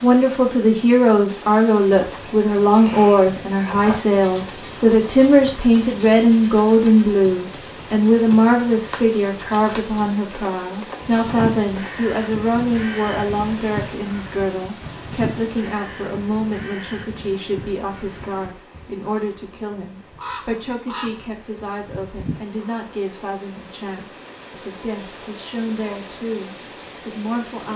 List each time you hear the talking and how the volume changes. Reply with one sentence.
You can hear the talking from 0.0 to 27.7 s, getting quieter.